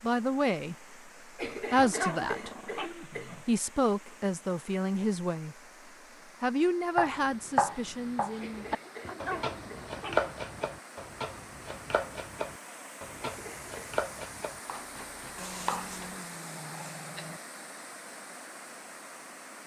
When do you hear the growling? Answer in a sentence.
You can hear the growling from 1.8 to 3.5 s, from 9.0 to 10.7 s and from 15.3 to 17.4 s.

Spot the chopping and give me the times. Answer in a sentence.
You can hear the chopping from 7.0 to 16.1 s.